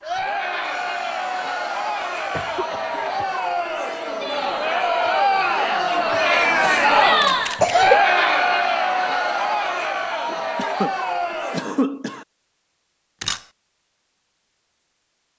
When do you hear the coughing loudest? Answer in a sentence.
The loudest moment of the coughing is at 8 seconds.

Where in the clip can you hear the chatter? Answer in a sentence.
You can hear the chatter from 0.0 to 11.7 s.